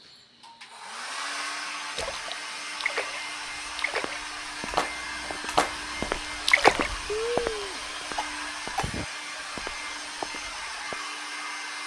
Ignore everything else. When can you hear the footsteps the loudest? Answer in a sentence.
The volume of the footsteps peaks at 7 seconds.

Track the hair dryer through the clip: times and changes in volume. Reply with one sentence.
You can hear the hair dryer from 0.0 to 11.8 s, at a steady volume.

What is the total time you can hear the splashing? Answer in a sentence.
The splashing can be heard for 5 seconds in total.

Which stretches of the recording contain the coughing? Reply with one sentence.
You can hear the coughing from 7.0 to 9.1 s.